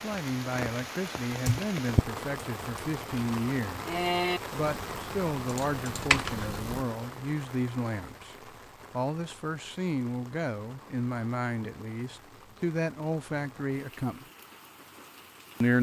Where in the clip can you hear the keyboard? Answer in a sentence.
The keyboard can be heard from 1.4 to 6.8 s.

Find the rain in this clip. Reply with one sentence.
The rain can be heard from 0.0 to 15.7 s.